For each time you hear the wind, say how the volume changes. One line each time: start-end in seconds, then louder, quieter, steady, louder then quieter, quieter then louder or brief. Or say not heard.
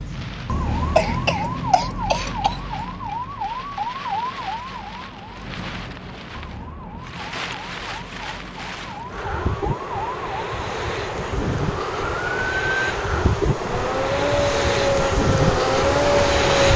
0.0-16.7 louder.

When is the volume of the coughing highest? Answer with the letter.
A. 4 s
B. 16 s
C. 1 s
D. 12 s
C.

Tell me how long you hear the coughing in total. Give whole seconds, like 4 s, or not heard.
2 s.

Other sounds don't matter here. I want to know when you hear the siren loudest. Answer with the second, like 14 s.
16 s.